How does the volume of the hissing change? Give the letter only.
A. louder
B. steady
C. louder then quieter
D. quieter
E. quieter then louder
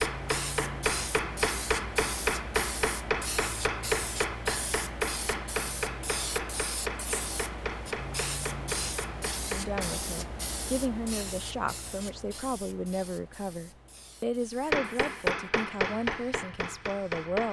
D.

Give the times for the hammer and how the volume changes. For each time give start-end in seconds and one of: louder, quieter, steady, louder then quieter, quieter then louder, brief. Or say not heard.
0.0-9.9 quieter
14.7-17.4 brief.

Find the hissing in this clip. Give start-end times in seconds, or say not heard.
0.0-17.2.